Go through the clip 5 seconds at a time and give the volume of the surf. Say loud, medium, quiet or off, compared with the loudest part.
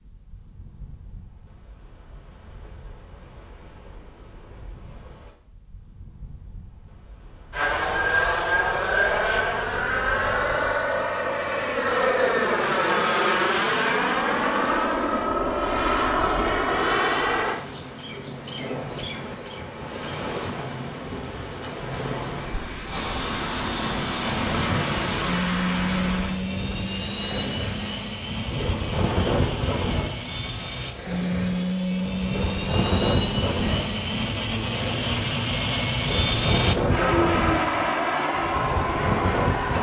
quiet, quiet, medium, medium, loud, loud, loud, loud.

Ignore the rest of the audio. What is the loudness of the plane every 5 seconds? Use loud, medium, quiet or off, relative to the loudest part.
off, loud, loud, loud, medium, medium, medium, loud.